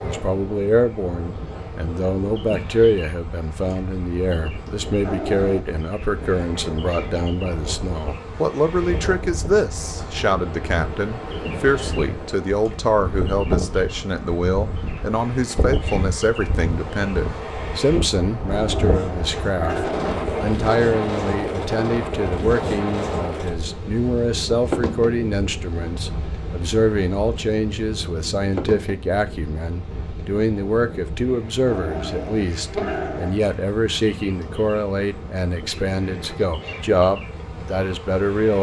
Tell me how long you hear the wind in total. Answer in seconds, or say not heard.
38 s.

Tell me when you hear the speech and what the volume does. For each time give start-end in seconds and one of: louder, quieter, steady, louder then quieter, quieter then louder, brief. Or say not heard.
0.0-38.5 steady.